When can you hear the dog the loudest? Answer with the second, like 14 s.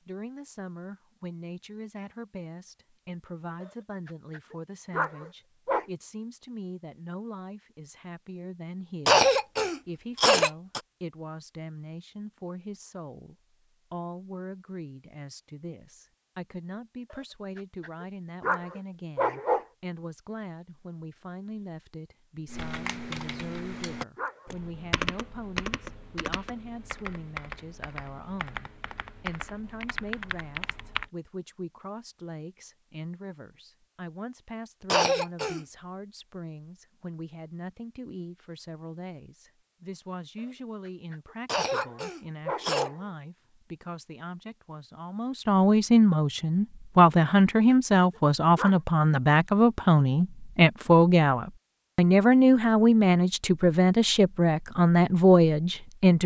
19 s.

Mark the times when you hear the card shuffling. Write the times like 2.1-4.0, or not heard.
not heard.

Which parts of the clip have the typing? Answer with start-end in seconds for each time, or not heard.
22.4-31.1.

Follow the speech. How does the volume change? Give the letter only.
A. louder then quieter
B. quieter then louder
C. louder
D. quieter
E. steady
C.